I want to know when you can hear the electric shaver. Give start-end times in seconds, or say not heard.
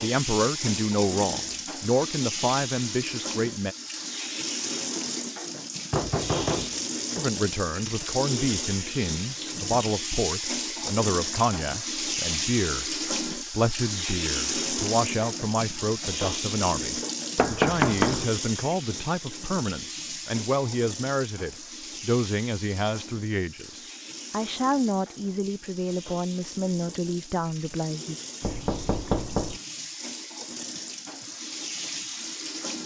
not heard.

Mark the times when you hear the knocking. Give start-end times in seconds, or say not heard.
5.9-7.2, 17.4-18.2, 28.4-29.6.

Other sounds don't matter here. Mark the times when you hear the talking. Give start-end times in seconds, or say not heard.
0.0-3.8, 7.2-28.1.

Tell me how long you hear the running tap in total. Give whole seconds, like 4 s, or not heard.
33 s.